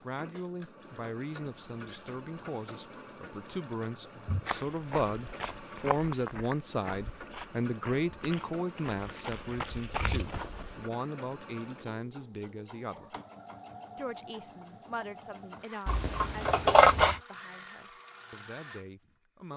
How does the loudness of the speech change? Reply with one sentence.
The loudness of the speech goes up, then down.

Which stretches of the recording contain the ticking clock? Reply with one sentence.
The ticking clock can't be heard in this clip.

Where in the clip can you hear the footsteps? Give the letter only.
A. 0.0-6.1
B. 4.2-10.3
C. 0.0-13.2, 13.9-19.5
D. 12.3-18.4
B.